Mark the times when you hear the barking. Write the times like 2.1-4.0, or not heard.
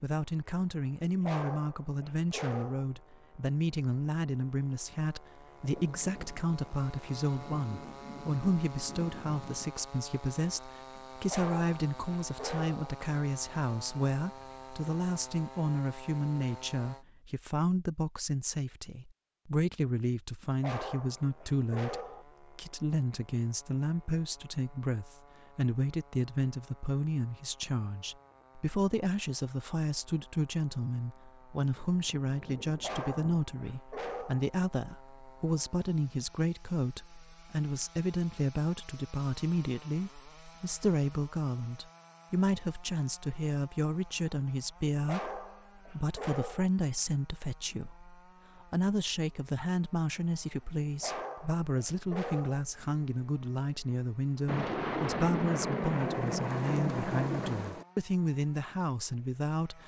1.2-2.9, 11.2-12.9, 20.6-22.2, 32.8-34.5, 45.0-46.7, 51.0-52.6.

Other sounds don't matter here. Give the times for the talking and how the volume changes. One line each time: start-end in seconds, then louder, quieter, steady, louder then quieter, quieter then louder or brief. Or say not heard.
0.0-59.8 steady.